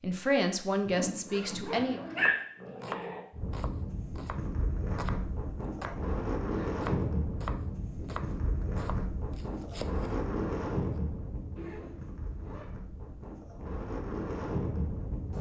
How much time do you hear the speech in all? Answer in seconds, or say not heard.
2 s.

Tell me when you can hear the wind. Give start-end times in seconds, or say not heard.
3.3-15.3.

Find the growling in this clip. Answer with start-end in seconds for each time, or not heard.
1.7-3.2.